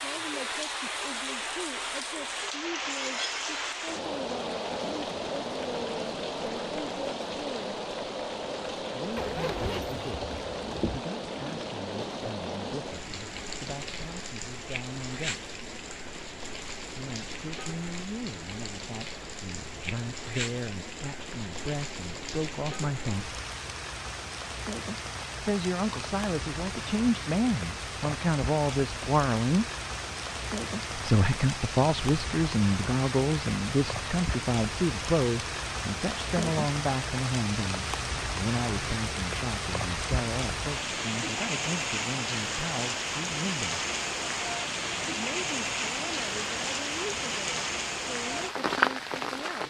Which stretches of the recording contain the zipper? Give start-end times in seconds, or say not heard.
9.2-11.0.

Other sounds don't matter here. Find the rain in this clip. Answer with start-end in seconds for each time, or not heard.
0.0-49.6.